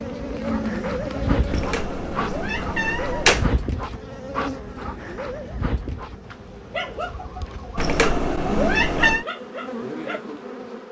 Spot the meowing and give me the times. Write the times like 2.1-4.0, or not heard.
1.5-3.5, 7.8-9.2.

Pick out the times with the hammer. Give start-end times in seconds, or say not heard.
not heard.